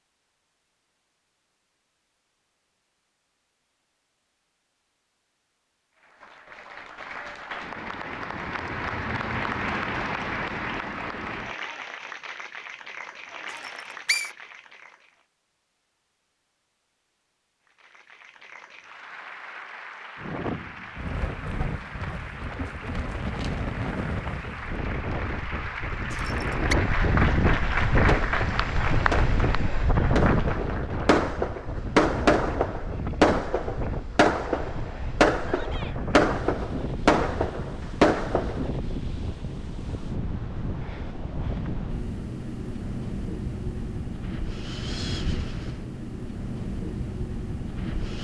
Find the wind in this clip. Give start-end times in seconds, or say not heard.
20.1-48.1.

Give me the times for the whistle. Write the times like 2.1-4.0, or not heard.
13.6-14.3, 26.1-26.8.